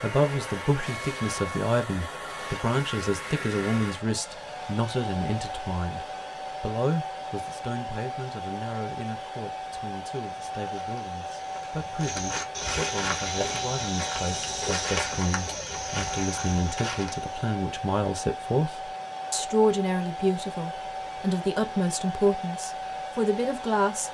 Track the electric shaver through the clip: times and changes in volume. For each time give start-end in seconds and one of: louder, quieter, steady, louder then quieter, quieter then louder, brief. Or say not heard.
not heard.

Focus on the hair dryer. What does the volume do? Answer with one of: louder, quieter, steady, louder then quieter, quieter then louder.
steady.